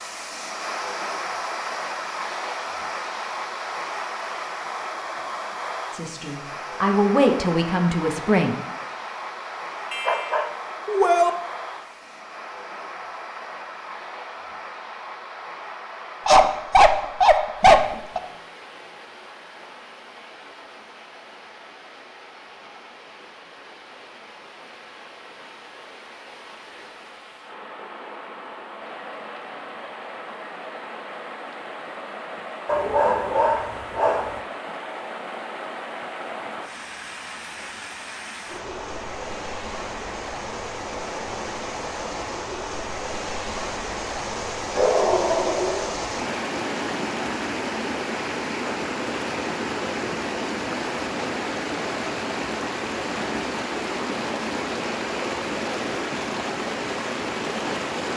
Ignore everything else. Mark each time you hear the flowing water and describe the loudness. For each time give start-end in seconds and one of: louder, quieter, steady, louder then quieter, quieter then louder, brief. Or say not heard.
0.0-58.1 quieter then louder.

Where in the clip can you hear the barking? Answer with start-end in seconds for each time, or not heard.
9.9-11.3, 16.2-18.2, 32.6-34.4, 44.8-45.9.